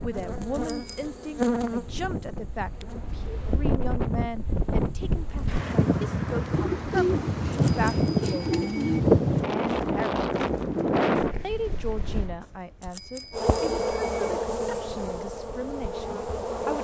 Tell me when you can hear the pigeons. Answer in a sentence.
The pigeons can be heard from 6.5 to 9.2 s.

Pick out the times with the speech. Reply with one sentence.
You can hear the speech from 0.0 to 10.2 s and from 11.4 to 16.8 s.